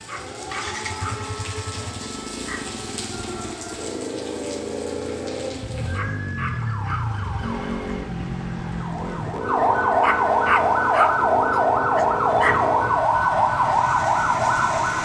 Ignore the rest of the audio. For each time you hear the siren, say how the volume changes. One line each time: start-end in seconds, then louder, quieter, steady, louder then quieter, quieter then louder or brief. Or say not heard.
0.0-15.0 louder.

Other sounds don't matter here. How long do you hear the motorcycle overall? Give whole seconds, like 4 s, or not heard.
15 s.